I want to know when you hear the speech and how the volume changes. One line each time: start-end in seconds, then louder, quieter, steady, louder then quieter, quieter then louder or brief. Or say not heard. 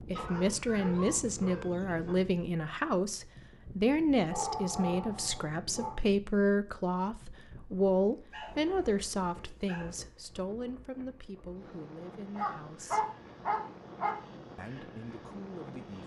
0.0-13.1 quieter
14.6-16.0 brief.